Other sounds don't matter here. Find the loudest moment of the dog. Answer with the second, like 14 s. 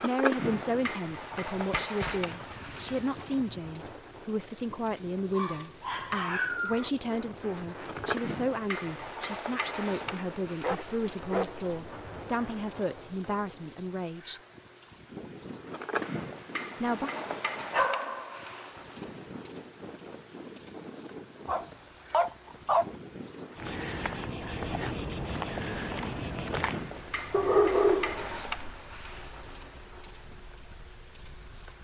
28 s.